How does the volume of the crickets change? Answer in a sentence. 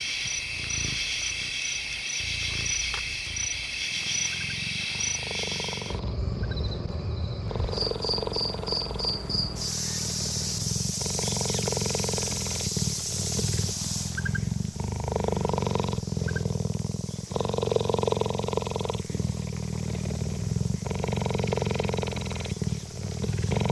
The loudness of the crickets goes down.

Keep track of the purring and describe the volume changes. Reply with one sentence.
The loudness of the purring goes up.